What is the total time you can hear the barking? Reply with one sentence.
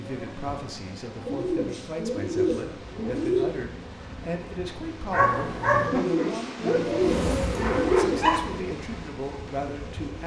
You can hear the barking for 3 seconds altogether.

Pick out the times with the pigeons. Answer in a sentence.
The pigeons can be heard from 1.2 to 3.5 s and from 5.8 to 8.6 s.